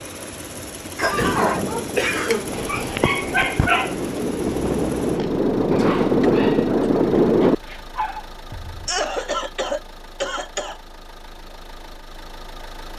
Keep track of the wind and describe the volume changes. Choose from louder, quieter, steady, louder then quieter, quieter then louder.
louder.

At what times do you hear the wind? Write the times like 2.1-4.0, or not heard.
0.0-7.5.